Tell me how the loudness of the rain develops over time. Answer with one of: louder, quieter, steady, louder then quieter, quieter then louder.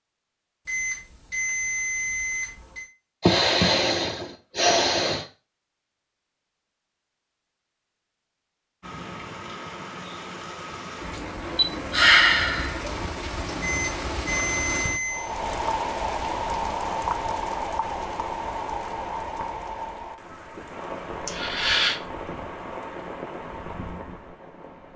louder then quieter.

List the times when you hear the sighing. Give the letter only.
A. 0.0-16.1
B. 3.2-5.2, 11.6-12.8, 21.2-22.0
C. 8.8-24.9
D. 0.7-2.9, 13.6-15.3
B.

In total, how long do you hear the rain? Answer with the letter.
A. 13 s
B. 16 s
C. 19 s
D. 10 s
B.